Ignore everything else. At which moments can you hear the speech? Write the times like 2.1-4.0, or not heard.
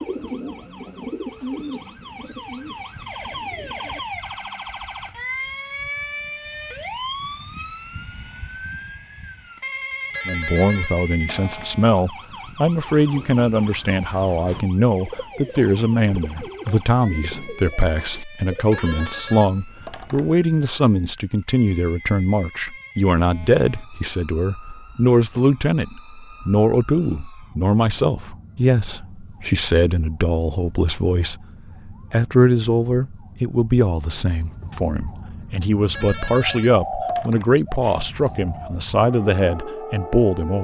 10.2-40.6.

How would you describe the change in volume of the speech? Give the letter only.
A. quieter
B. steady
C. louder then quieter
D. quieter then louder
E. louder
B.